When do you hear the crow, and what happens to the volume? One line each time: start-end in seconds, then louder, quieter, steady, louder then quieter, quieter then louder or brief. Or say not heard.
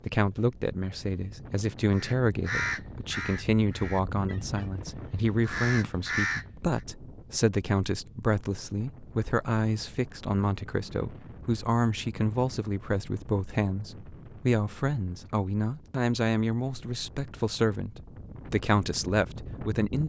1.9-6.8 quieter then louder.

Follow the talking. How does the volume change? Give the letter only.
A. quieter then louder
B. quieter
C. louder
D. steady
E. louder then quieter
D.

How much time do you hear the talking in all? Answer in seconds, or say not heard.
20 s.